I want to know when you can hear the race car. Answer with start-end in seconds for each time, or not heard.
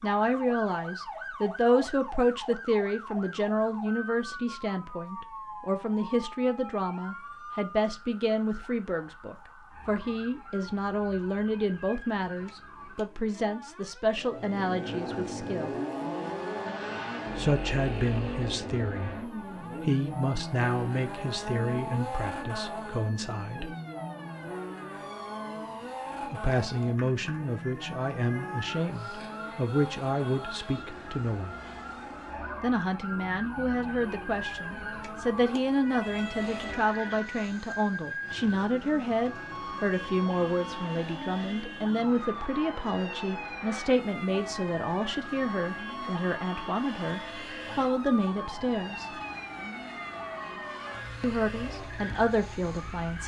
14.1-53.2.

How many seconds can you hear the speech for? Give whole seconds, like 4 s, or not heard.
46 s.